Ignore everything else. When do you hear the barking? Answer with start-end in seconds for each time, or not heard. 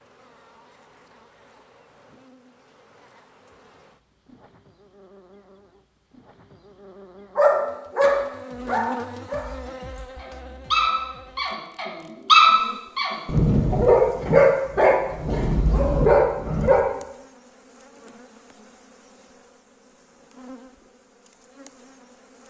7.3-16.8.